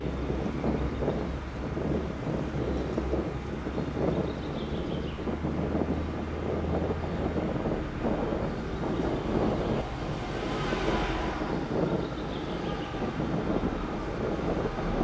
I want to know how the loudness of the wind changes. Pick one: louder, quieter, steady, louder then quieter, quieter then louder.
steady.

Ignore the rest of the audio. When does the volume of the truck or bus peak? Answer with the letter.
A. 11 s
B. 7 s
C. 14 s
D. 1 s
A.